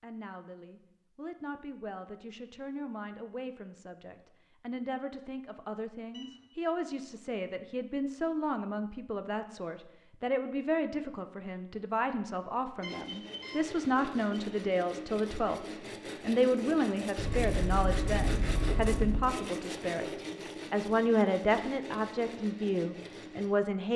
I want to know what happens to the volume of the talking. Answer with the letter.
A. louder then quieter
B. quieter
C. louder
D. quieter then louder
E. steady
C.